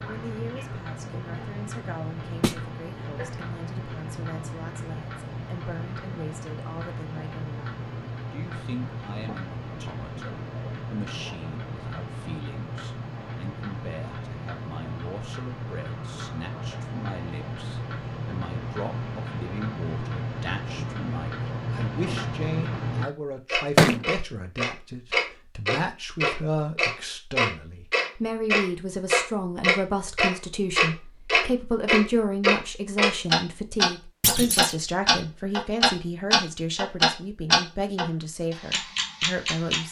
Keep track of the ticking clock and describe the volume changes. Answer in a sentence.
The volume of the ticking clock goes up.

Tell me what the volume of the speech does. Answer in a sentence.
The loudness of the speech goes up.